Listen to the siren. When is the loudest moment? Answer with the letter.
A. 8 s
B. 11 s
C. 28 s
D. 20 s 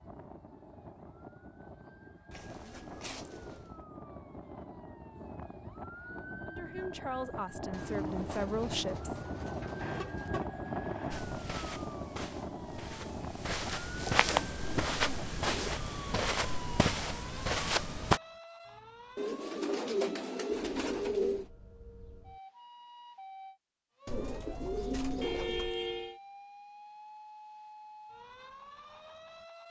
B.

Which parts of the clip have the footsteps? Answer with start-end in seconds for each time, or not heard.
11.1-18.2.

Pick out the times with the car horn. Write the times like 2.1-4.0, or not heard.
9.8-11.2, 25.2-26.2.